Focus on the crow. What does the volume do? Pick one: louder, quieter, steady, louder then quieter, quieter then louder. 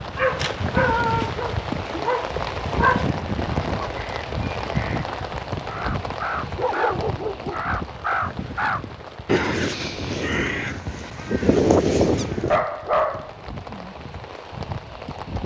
louder.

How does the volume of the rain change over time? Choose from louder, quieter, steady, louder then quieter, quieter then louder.
quieter.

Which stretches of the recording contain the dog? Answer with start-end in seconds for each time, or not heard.
0.1-3.0, 6.5-7.6, 12.5-13.9.